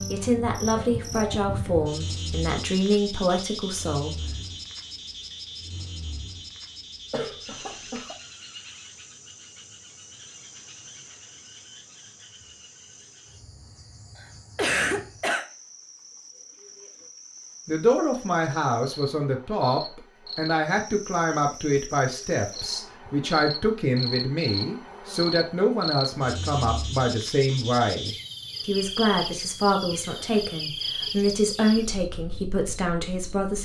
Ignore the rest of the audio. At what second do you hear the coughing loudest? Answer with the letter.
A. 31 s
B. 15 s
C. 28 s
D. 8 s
B.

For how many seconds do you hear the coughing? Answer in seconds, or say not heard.
4 s.